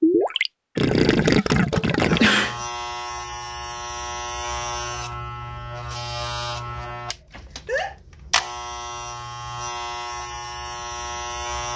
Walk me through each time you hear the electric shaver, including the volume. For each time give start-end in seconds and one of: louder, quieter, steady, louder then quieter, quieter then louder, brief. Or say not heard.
2.0-11.7 steady.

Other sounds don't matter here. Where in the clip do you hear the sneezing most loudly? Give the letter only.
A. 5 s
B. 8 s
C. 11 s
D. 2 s
D.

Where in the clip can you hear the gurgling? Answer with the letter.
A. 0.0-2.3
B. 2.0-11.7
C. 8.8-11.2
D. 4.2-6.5
A.